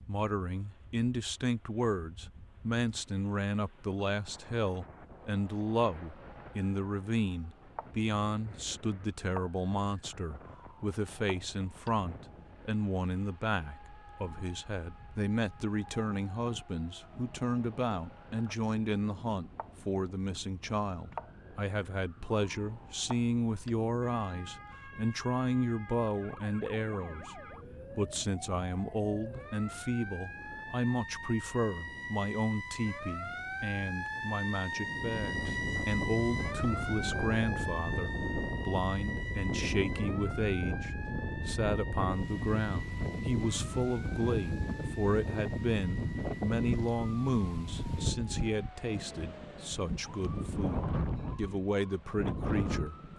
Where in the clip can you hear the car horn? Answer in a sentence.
The car horn can't be heard in this clip.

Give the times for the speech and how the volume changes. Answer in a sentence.
You can hear the speech from 0.1 to 53.1 s, at a steady volume.